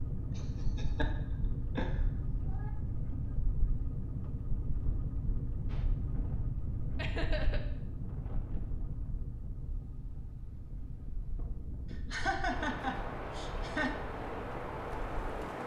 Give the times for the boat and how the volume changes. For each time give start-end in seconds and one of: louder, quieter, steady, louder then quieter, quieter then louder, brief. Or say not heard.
0.0-15.6 quieter.